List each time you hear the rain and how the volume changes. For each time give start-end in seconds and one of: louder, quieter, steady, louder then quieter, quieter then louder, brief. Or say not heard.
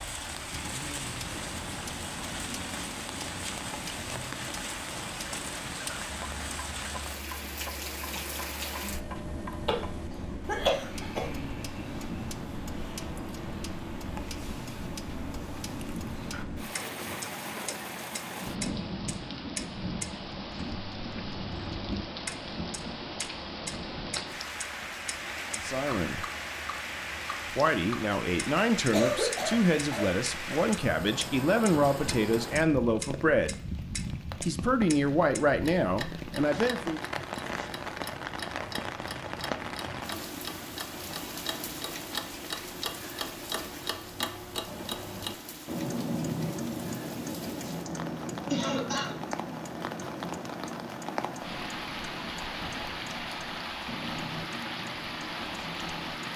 0.0-56.3 steady.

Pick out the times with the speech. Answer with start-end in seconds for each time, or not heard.
25.5-26.2, 27.5-33.8, 34.5-37.0.